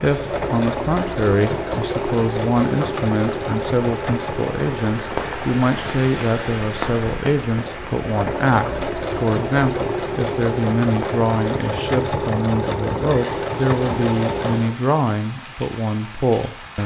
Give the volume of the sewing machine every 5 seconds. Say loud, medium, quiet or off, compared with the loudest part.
loud, loud, loud, off.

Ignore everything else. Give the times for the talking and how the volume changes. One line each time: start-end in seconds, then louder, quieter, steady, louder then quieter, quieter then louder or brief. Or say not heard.
0.0-16.8 steady.